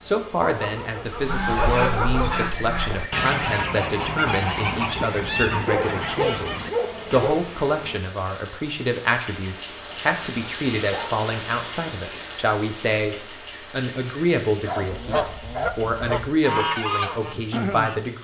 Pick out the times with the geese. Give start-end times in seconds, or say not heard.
1.1-7.3, 14.7-17.9.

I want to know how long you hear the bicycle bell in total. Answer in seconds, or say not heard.
2 s.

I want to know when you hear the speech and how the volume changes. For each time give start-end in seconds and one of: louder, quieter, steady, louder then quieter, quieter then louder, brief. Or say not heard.
0.0-18.1 steady.